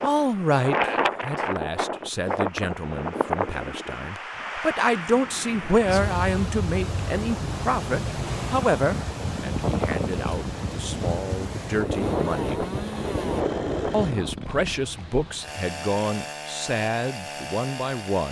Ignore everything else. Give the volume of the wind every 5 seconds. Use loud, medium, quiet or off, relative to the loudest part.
loud, loud, loud, off.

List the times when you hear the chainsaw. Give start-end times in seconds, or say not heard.
11.8-18.2.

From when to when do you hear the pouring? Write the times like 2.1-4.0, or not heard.
not heard.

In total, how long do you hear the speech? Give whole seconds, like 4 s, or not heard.
17 s.